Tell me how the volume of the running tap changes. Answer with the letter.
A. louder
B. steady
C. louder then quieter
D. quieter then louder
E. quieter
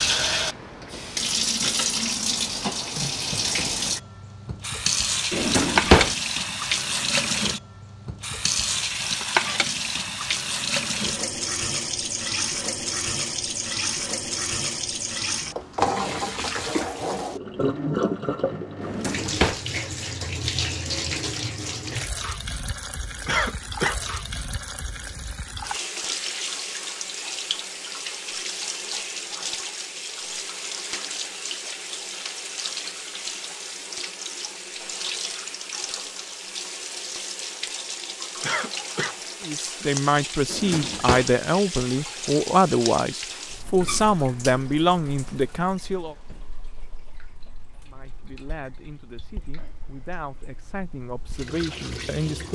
E.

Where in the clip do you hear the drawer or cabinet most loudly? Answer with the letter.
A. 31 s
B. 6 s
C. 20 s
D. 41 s
B.